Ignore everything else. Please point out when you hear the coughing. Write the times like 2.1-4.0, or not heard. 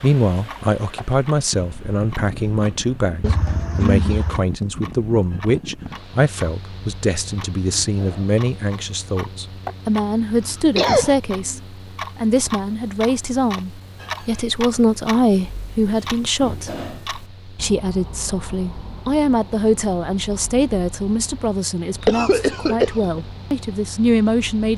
3.2-4.5, 10.3-11.2, 22.0-23.2.